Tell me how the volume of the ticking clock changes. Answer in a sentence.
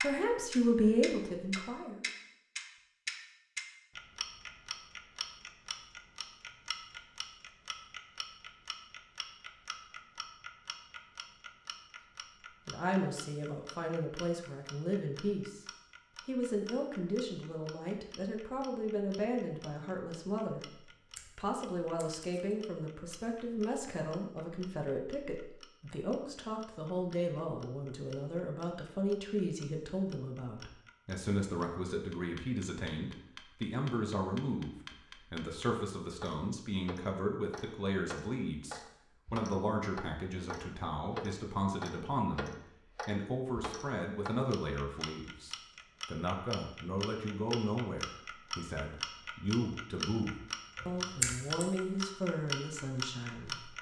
The loudness of the ticking clock goes down, then up.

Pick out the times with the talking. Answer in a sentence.
You can hear the talking from 0.0 to 2.0 s, from 12.7 to 15.7 s and from 16.2 to 53.7 s.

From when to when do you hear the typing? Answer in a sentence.
The typing can't be heard in this clip.